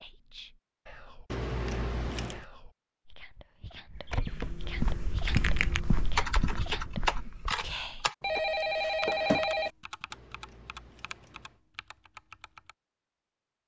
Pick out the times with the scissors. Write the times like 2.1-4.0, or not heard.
1.3-2.5, 10.1-11.6.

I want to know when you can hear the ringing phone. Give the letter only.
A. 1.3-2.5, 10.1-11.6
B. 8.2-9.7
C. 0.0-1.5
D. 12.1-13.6
B.